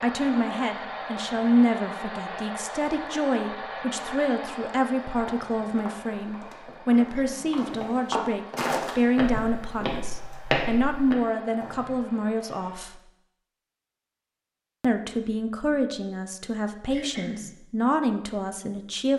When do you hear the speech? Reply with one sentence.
The speech can be heard from 0.0 to 13.0 s and from 14.8 to 19.1 s.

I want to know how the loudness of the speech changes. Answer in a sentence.
The volume of the speech stays about the same.